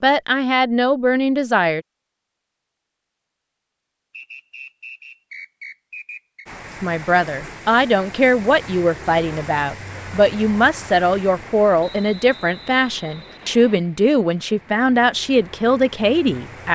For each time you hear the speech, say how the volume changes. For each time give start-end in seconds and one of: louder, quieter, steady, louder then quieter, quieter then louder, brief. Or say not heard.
0.0-1.8 brief
6.8-16.7 steady.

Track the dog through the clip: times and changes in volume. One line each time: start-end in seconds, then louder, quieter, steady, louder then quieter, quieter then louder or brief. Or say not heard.
not heard.